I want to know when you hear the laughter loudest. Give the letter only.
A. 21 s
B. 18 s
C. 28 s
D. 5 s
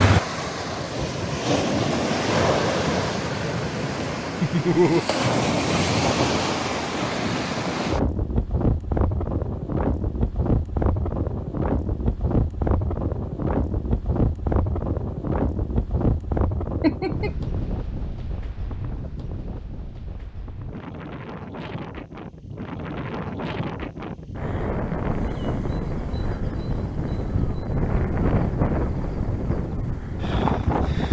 D.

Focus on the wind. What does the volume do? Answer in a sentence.
The loudness of the wind goes down, then up.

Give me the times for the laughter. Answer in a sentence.
The laughter can be heard from 4.4 to 5.0 s and from 16.8 to 17.3 s.